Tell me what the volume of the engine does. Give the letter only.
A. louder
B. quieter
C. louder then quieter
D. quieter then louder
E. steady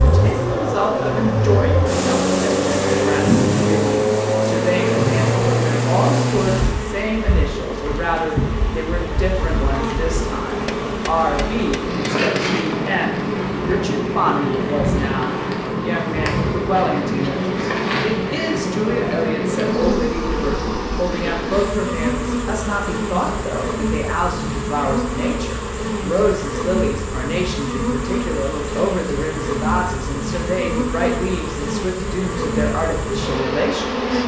A.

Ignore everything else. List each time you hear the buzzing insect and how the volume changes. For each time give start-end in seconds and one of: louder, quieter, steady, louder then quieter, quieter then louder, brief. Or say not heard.
0.0-34.2 steady.